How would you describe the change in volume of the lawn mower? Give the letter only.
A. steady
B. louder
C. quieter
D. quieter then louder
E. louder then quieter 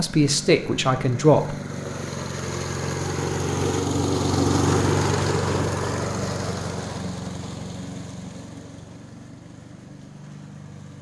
E.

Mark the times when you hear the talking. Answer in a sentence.
You can hear the talking from 0.0 to 1.6 s.